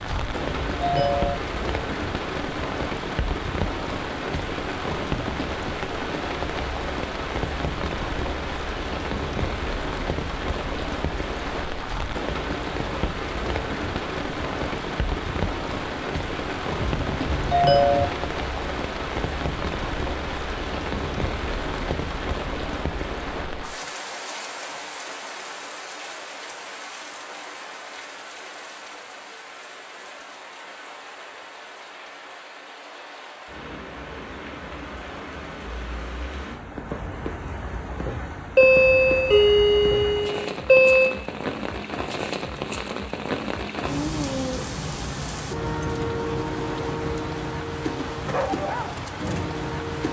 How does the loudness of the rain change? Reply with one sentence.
The volume of the rain goes down, then up.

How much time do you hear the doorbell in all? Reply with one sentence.
The doorbell can be heard for 5 seconds in total.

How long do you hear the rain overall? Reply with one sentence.
The rain can be heard for 50 seconds in total.